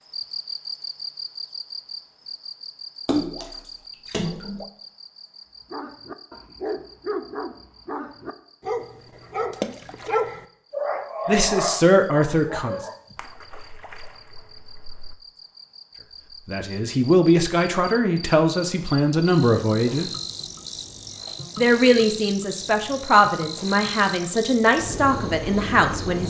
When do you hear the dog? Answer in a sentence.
You can hear the dog from 5.7 to 13.2 s.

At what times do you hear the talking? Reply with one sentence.
You can hear the talking from 11.2 to 12.8 s, from 16.4 to 20.1 s and from 21.6 to 26.2 s.